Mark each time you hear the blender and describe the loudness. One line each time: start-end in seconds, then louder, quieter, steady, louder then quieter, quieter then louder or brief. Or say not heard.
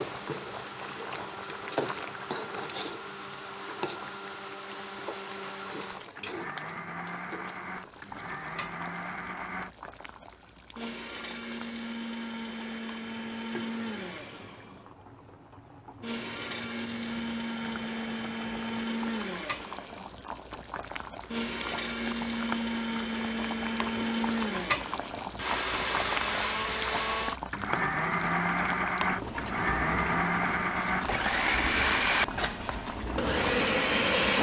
0.0-34.3 louder.